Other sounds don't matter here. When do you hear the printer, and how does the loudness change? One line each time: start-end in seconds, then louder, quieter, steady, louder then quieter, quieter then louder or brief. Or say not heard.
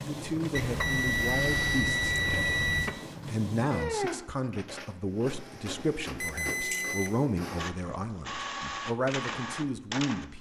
0.0-10.3 quieter then louder.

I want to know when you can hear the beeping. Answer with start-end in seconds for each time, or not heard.
0.6-3.0, 6.2-7.2.